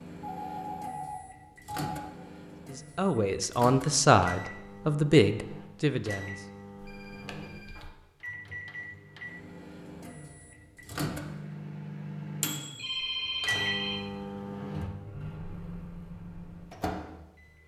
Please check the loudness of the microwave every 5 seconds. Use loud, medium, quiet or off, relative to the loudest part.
medium, medium, loud, medium.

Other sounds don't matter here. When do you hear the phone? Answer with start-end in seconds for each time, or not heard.
0.2-2.1, 6.8-7.9, 12.8-14.0.